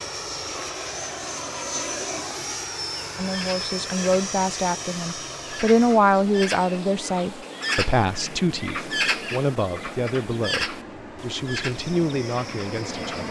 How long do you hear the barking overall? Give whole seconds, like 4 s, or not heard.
not heard.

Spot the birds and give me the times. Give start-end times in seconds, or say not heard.
3.2-13.2.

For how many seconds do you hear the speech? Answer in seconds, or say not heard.
10 s.